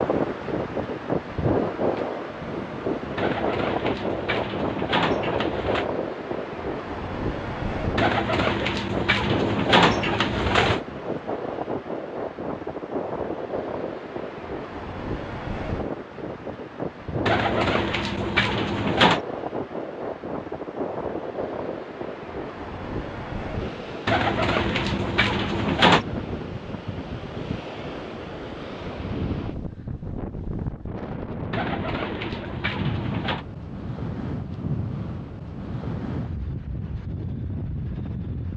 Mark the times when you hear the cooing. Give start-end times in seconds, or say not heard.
3.1-5.8, 8.0-10.8, 17.2-19.2, 24.1-26.1, 31.5-33.5.